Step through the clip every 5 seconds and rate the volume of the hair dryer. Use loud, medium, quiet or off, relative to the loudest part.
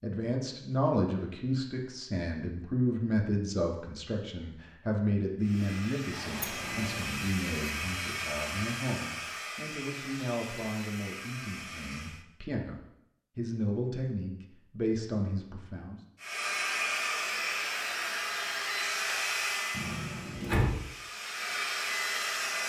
off, medium, medium, loud, loud.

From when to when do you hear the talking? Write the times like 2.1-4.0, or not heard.
0.0-16.0.